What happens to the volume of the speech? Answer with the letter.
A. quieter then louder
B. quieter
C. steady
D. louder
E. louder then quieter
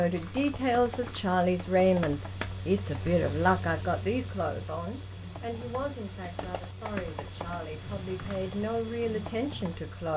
A.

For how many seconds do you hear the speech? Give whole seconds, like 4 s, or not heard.
10 s.